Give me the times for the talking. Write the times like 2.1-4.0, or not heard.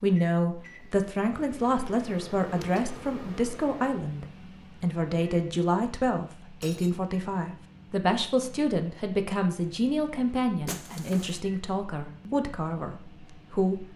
0.0-13.9.